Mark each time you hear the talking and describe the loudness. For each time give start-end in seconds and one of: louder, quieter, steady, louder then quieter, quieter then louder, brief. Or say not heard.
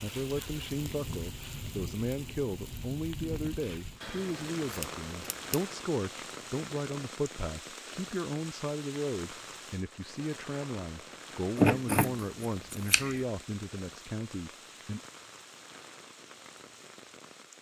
0.0-15.1 steady.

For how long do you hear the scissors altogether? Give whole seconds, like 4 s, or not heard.
3 s.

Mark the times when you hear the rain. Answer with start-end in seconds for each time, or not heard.
0.0-17.5.